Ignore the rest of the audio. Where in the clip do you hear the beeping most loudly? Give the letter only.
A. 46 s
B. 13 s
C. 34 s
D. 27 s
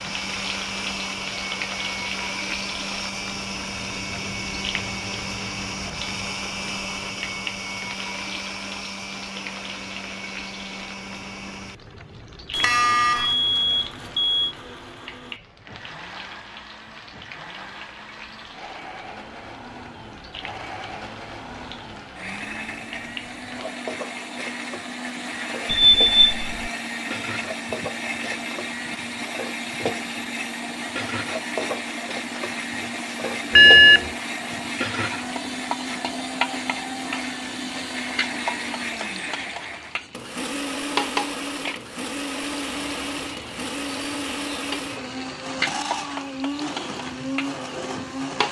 C.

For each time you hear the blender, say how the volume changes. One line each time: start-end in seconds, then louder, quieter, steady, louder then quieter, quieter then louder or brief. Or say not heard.
0.0-48.4 quieter then louder.